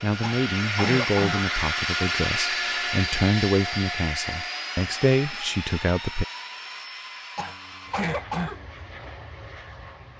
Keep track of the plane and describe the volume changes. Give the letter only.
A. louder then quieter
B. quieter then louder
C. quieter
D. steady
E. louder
C.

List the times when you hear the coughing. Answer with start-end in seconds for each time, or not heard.
0.2-1.5, 7.3-8.7.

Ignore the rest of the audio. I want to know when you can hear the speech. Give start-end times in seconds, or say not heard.
0.0-6.2.